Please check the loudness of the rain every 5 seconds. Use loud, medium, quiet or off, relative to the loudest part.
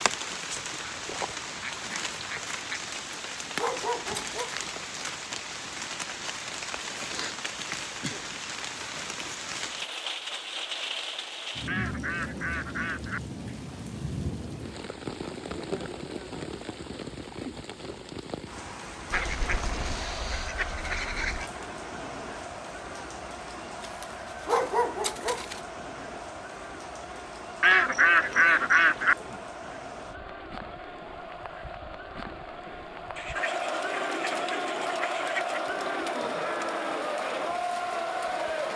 loud, loud, loud, loud, medium, medium, medium, medium.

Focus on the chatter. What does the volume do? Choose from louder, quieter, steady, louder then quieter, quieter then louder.
louder.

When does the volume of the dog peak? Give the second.
25 s.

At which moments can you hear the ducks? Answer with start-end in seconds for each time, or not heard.
0.8-2.8, 11.7-13.4, 19.1-21.5, 27.6-29.4, 33.1-35.6.